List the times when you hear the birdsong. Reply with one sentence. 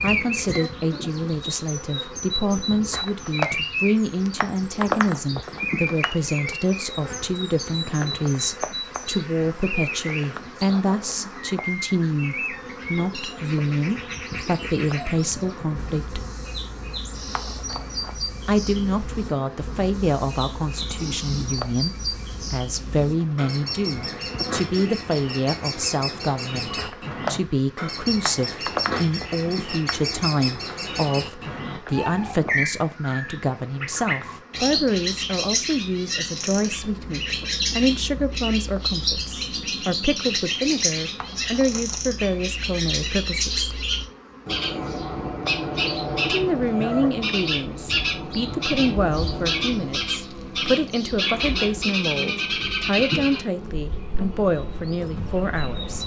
You can hear the birdsong from 0.0 to 56.0 s.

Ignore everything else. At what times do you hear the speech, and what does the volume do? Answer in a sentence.
The speech can be heard from 0.0 to 16.2 s, at a steady volume; from 18.4 to 43.7 s, at a steady volume; and from 46.2 to 56.0 s, at a steady volume.